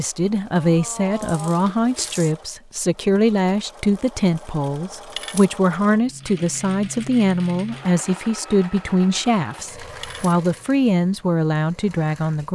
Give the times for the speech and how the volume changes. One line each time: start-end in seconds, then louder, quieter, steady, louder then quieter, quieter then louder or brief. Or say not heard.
0.0-12.5 steady.